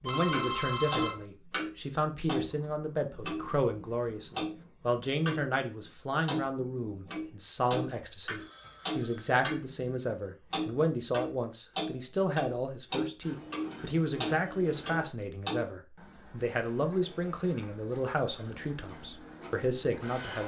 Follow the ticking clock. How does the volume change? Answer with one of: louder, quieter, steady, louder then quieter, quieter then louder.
quieter.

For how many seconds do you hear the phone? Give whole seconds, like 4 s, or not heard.
3 s.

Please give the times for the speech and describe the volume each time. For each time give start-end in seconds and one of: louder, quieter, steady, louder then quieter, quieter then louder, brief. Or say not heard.
0.0-20.4 steady.